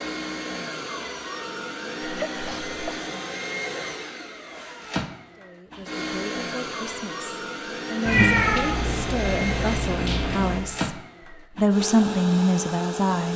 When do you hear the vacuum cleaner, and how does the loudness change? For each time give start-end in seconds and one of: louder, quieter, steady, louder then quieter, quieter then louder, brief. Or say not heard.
0.0-13.3 steady.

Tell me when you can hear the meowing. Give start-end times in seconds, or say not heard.
8.1-10.7.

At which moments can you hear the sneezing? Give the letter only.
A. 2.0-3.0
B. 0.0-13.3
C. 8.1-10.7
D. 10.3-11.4
A.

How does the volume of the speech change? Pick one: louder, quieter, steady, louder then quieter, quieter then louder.
louder.